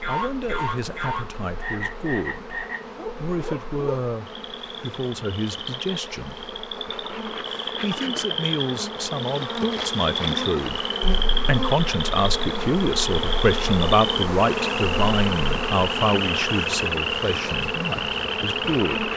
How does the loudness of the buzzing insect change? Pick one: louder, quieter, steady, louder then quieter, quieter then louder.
louder.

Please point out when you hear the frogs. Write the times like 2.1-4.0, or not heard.
0.0-19.1.